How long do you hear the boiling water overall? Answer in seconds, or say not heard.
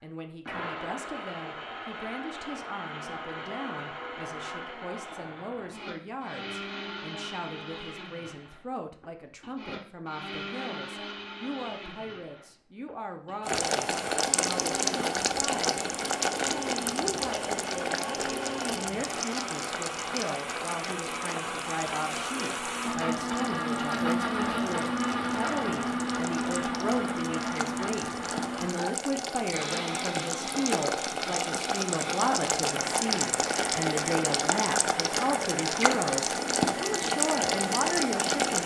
25 s.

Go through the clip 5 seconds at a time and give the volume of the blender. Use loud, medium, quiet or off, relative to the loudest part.
medium, medium, medium, medium, loud, loud, medium, medium.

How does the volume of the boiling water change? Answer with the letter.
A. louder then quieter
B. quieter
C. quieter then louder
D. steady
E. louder
C.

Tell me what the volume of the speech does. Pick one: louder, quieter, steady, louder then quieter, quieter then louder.
louder.